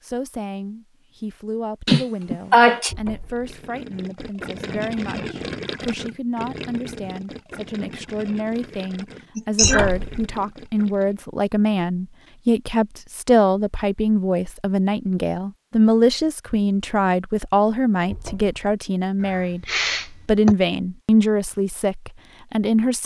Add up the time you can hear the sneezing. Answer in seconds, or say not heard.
3 s.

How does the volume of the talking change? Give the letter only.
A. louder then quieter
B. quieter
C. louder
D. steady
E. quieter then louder
C.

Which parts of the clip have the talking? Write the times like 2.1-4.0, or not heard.
0.0-23.0.